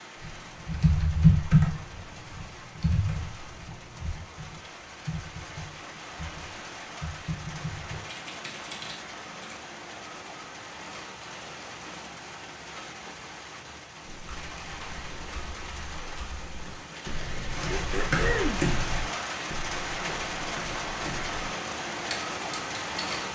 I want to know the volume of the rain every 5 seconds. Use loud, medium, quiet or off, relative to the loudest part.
quiet, medium, medium, loud, loud.